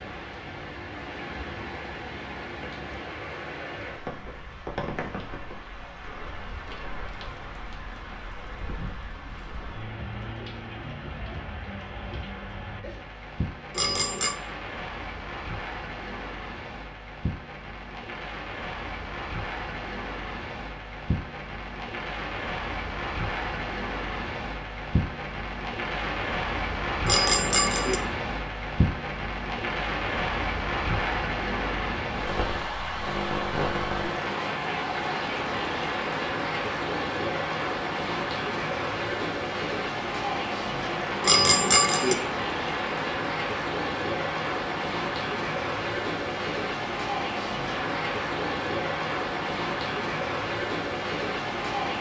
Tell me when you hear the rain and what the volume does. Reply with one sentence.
The rain can be heard from 0.0 to 51.9 s, getting louder.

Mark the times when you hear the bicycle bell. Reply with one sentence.
The bicycle bell can be heard from 13.7 to 14.3 s, from 27.1 to 28.0 s and from 41.2 to 42.1 s.